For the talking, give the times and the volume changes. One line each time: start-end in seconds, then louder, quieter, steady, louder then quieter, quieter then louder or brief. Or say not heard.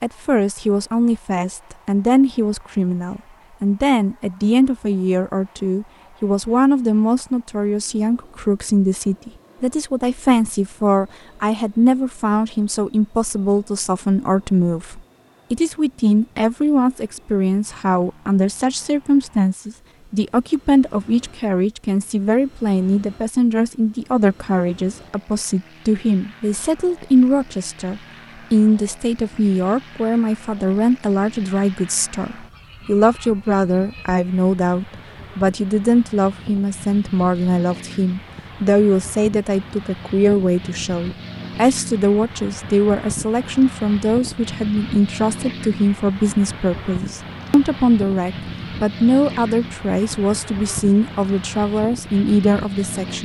0.0-53.1 steady.